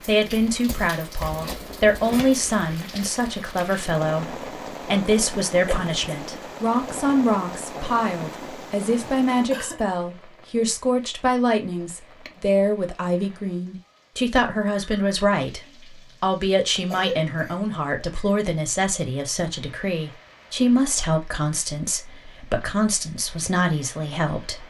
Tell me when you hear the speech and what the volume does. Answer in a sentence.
You can hear the speech from 0.1 to 24.6 s, at a steady volume.